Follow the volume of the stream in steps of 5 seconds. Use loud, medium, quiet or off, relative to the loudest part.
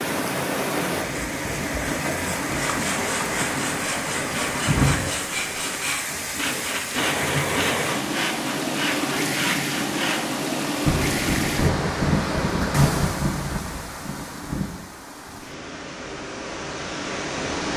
loud, loud, loud, medium.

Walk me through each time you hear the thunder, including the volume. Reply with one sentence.
You can hear the thunder from 10.8 to 14.8 s, getting quieter.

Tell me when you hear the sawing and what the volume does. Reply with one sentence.
The sawing can be heard from 2.5 to 10.3 s, at a steady volume.